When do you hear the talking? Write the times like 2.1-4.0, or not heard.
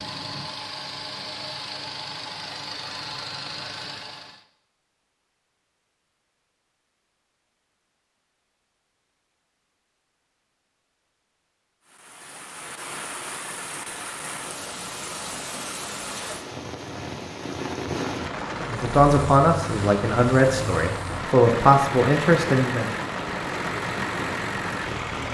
18.5-22.9.